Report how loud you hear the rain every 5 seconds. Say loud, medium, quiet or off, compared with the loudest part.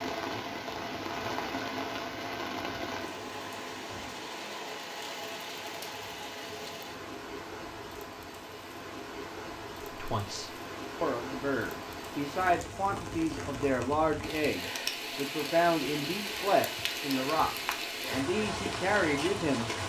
loud, medium, loud, loud.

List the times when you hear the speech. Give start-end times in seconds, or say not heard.
9.9-19.7.